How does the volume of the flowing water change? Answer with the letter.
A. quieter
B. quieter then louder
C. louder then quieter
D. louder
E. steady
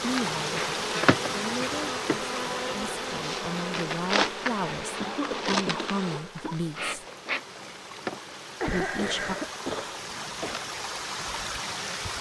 B.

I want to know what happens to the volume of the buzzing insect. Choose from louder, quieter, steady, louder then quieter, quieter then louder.
quieter.